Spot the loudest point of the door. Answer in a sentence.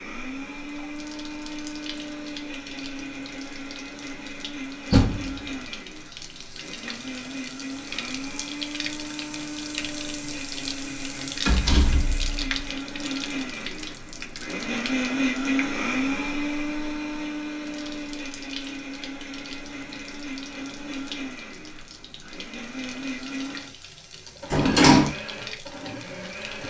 The loudest moment of the door is at 25 seconds.